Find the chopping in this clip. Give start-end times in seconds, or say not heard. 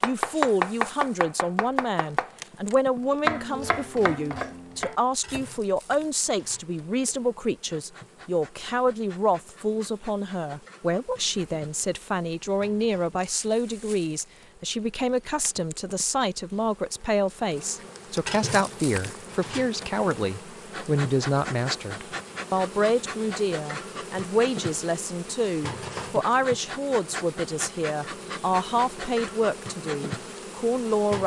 0.0-5.4.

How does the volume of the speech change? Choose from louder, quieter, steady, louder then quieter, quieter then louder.
steady.